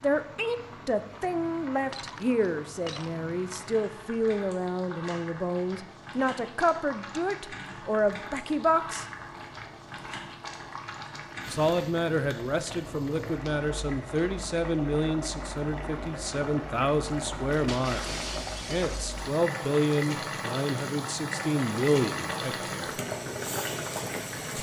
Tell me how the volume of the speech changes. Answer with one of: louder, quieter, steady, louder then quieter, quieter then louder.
steady.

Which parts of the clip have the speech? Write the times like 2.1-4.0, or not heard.
0.0-9.1, 11.5-23.0.